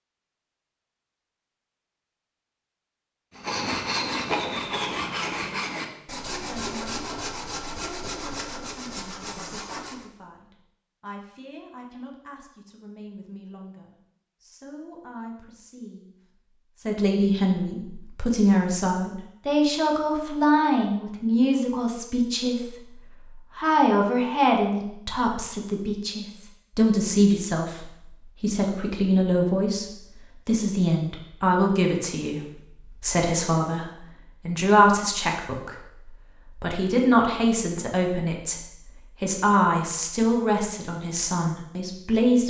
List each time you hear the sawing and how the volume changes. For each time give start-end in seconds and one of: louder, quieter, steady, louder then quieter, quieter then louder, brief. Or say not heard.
3.4-10.1 quieter.